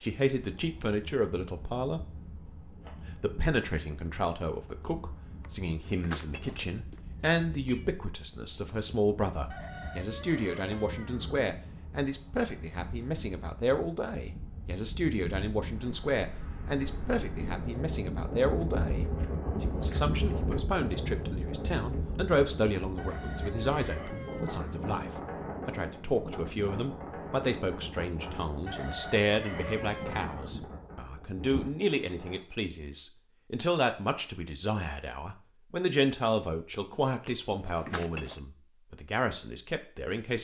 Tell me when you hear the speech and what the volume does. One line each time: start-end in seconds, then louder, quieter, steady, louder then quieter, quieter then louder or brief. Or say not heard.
0.0-2.0 brief
3.1-40.3 steady.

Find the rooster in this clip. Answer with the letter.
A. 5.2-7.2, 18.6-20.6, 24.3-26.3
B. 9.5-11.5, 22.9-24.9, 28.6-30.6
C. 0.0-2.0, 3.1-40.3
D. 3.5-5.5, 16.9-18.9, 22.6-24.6
B.